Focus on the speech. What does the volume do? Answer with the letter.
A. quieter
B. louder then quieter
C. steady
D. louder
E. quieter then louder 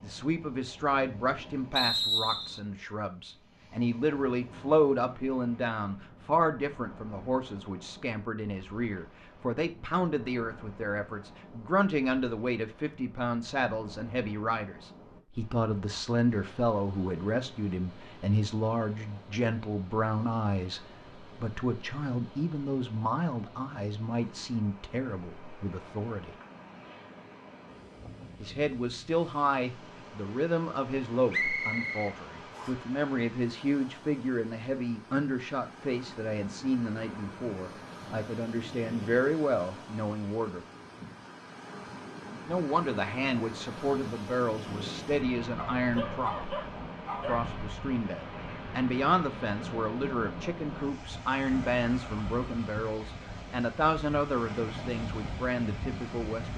C.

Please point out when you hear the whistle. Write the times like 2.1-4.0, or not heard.
1.8-2.6, 31.3-32.7.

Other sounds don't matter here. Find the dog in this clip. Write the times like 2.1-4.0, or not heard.
45.5-47.5.